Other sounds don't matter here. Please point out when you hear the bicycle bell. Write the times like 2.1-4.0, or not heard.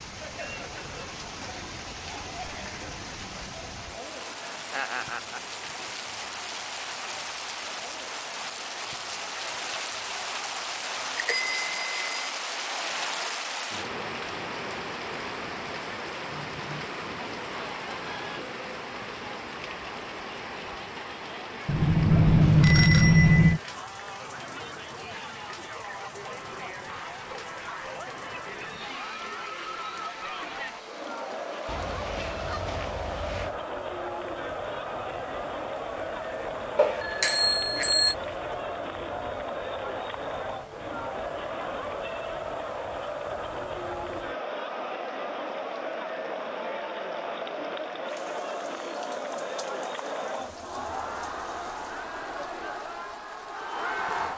11.2-12.2, 21.6-23.6, 36.8-38.1.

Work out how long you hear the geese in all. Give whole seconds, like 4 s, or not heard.
4 s.